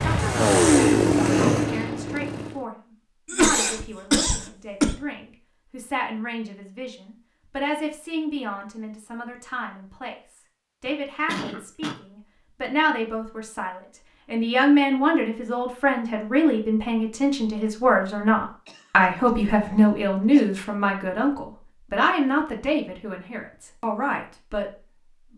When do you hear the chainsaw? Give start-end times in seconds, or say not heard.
0.0-2.6.